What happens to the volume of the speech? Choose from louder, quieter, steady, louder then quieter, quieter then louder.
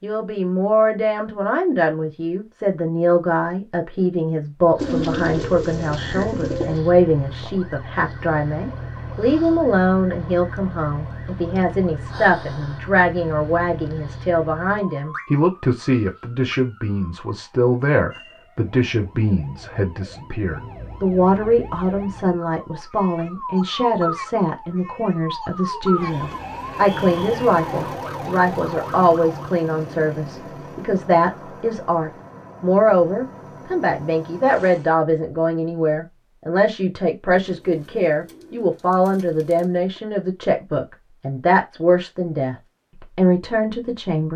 steady.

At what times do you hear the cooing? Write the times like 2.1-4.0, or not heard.
4.8-6.8, 37.4-39.8.